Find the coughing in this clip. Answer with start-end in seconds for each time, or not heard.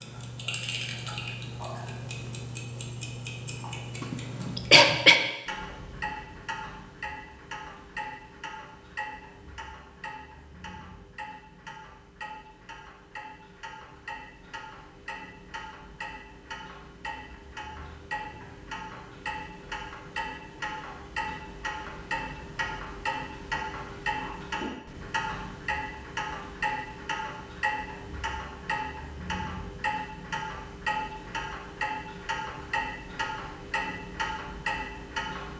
4.0-5.2.